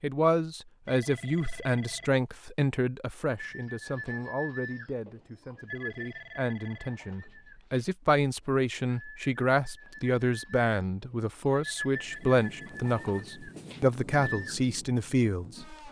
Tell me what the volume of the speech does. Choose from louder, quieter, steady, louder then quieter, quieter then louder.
quieter then louder.